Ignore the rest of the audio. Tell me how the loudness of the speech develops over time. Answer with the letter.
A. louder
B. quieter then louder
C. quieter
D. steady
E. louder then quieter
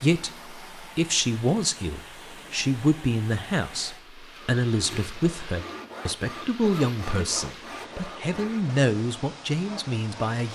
D.